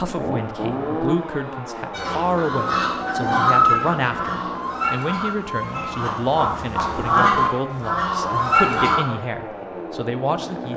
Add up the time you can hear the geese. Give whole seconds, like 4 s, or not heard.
7 s.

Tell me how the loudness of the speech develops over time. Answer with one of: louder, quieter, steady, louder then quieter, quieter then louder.
steady.